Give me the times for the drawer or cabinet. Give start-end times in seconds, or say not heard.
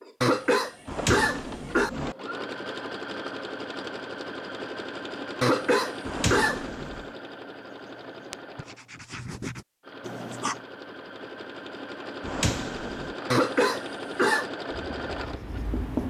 0.8-2.1, 6.0-7.2, 12.2-13.2.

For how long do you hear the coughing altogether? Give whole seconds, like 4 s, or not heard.
4 s.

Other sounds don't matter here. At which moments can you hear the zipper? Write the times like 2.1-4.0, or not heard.
not heard.